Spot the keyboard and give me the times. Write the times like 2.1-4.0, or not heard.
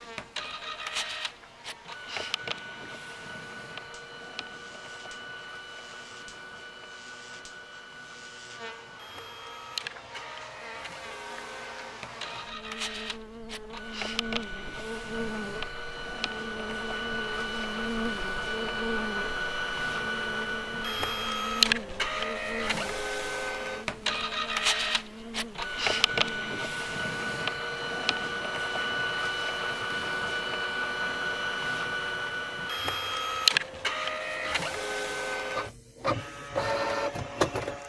not heard.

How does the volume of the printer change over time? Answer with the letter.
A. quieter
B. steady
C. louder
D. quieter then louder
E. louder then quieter
C.